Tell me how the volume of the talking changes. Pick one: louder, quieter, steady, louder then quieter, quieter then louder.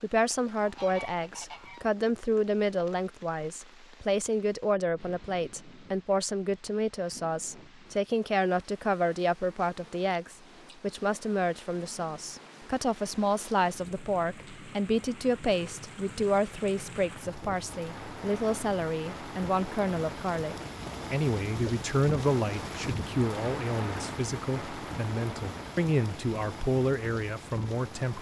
steady.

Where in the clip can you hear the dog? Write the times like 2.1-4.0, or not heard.
not heard.